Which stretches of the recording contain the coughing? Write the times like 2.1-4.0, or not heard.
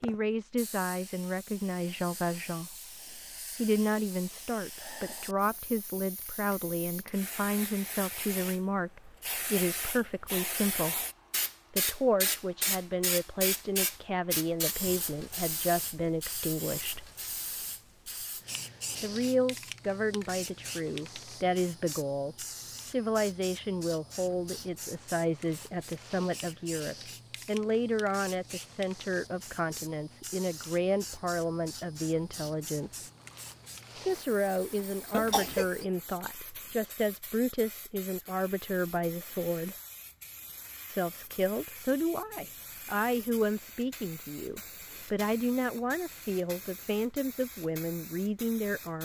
35.1-35.7.